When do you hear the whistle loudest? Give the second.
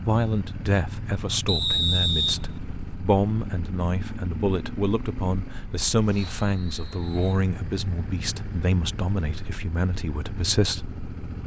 2 s.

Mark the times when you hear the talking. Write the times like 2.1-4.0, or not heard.
0.0-10.9.